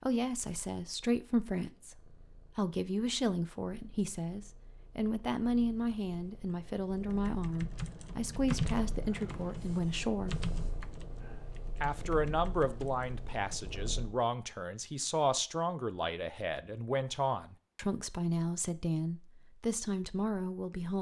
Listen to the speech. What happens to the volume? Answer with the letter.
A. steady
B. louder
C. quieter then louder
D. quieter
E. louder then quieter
A.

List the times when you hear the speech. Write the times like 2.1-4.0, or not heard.
0.0-10.4, 11.8-20.9.